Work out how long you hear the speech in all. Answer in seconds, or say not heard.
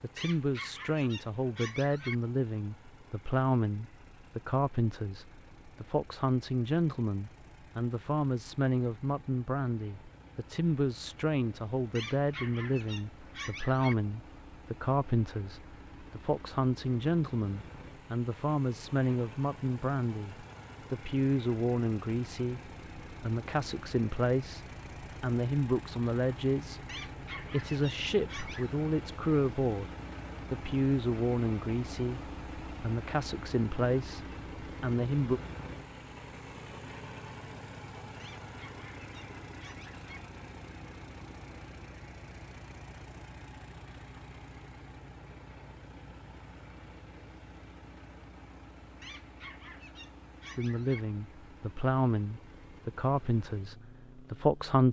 39 s.